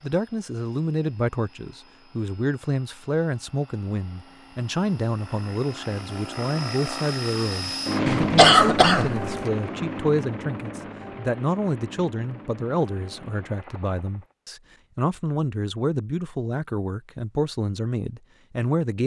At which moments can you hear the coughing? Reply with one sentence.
You can hear the coughing from 8.1 to 9.3 s.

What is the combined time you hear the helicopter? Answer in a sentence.
The helicopter can be heard for 14 seconds in total.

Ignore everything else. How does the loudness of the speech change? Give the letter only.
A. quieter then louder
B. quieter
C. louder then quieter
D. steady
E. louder
D.